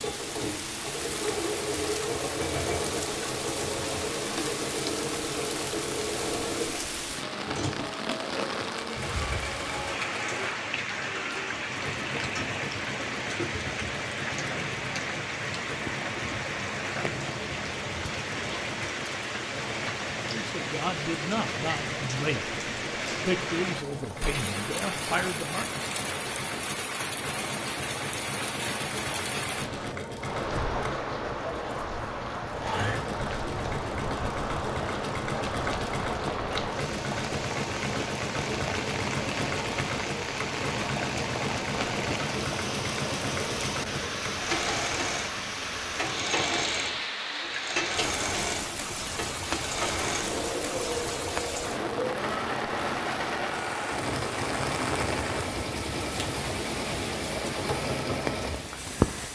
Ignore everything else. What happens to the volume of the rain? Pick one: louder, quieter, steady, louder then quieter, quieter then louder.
steady.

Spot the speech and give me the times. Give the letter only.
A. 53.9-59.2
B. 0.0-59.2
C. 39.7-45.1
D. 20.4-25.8
D.